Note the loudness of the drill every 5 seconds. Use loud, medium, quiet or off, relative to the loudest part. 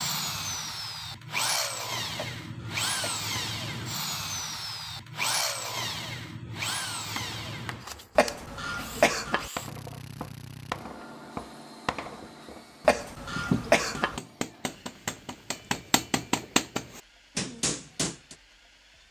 loud, loud, quiet, quiet.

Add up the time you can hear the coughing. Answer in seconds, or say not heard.
4 s.